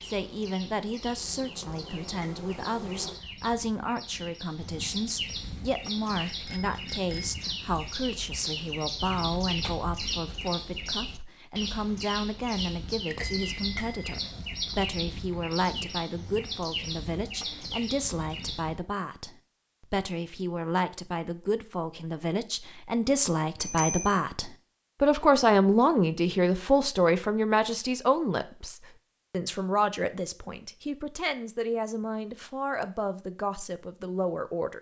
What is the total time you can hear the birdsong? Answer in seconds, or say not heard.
19 s.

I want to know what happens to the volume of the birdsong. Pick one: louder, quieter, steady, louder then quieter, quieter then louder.
louder.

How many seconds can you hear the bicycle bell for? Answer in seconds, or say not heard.
3 s.